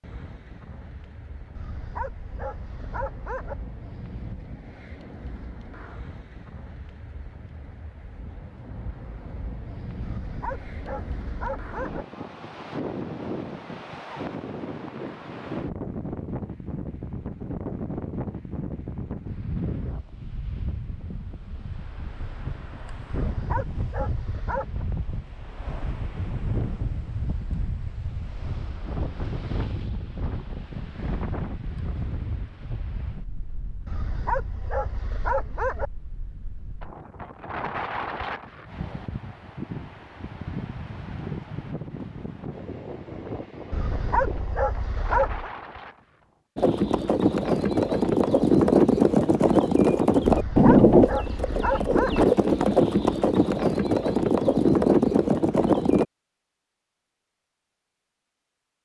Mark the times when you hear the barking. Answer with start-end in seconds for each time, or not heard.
1.6-3.5, 10.0-12.1, 23.1-24.9, 33.9-35.9, 43.7-45.5, 50.2-52.2.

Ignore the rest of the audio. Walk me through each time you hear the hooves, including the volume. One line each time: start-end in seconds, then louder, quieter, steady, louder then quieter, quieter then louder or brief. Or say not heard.
46.5-56.0 steady.